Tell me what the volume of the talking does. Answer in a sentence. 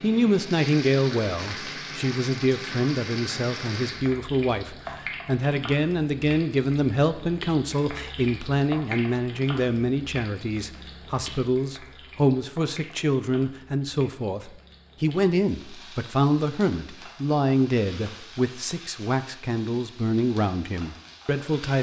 The volume of the talking stays about the same.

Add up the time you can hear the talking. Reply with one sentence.
You can hear the talking for 22 seconds altogether.